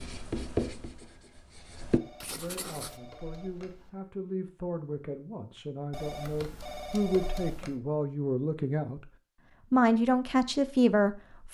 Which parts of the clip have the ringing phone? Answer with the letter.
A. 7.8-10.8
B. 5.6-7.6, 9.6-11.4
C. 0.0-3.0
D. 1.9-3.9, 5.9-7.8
D.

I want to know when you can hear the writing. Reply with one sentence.
The writing can be heard from 0.0 to 3.0 s.